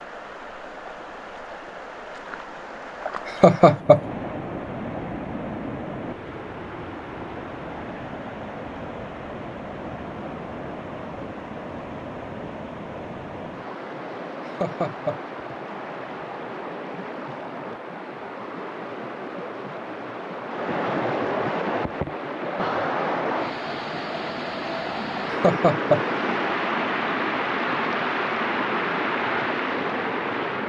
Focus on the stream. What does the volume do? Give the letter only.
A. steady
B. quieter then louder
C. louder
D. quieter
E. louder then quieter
C.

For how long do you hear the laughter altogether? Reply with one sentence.
You can hear the laughter for 2 seconds altogether.